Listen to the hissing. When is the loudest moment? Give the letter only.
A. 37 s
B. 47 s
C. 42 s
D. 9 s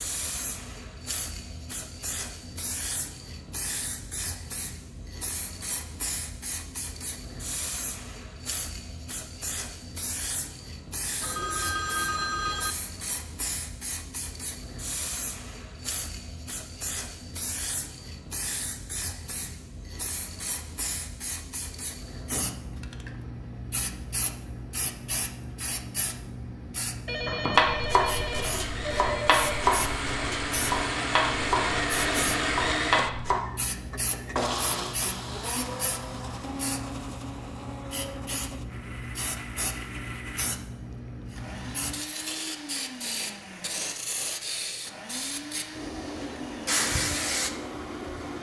B.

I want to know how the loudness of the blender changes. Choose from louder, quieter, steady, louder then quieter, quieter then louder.
quieter.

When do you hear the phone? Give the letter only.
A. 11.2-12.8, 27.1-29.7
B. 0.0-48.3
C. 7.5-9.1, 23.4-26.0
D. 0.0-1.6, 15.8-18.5
A.